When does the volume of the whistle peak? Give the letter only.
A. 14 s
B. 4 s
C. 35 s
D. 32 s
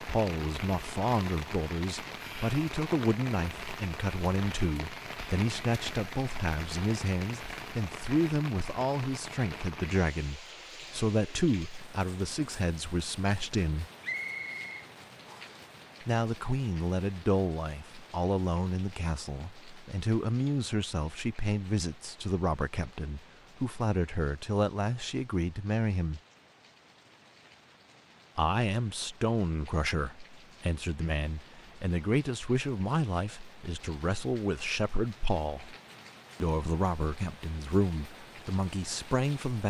A.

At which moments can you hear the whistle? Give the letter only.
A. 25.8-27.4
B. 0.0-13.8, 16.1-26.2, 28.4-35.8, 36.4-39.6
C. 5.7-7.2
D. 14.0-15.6
D.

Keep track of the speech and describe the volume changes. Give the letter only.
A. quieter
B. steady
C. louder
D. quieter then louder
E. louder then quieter
B.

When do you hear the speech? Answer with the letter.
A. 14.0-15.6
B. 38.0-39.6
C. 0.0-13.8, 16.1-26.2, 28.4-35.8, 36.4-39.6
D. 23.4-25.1
C.